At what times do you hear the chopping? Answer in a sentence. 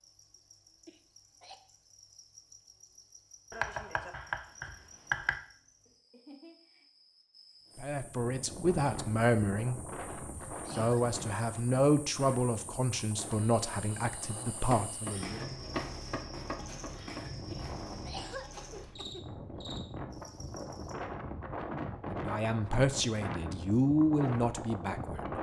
The chopping can be heard from 3.5 to 5.4 s and from 14.7 to 17.3 s.